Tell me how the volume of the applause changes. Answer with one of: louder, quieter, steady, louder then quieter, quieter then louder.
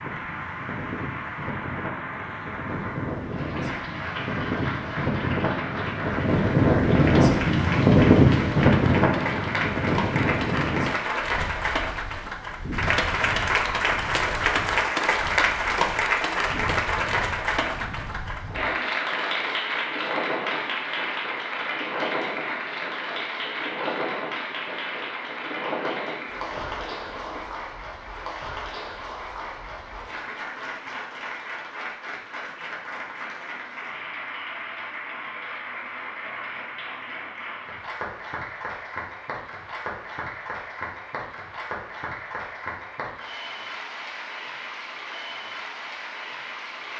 louder then quieter.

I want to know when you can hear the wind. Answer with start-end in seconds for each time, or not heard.
0.0-27.6.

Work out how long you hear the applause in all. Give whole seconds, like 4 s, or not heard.
47 s.